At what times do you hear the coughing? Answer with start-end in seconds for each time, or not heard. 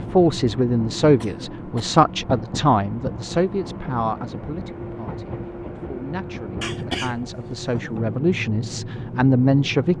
1.2-2.0, 6.6-8.0.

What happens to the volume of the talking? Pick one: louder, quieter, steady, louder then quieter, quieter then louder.
quieter then louder.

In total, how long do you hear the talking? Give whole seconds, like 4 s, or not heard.
10 s.